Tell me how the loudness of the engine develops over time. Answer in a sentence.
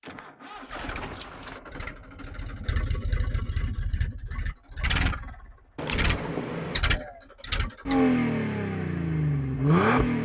The loudness of the engine goes up.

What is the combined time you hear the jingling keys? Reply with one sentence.
The jingling keys can be heard for 2 seconds in total.